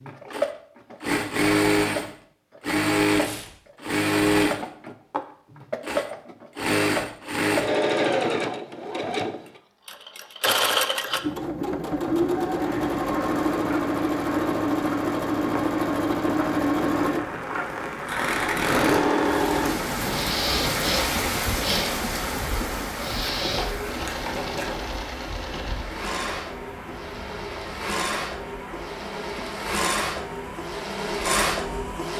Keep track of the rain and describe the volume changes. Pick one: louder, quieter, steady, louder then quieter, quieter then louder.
louder then quieter.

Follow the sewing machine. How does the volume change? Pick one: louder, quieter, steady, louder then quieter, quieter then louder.
quieter.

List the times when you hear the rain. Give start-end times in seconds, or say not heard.
12.6-32.1.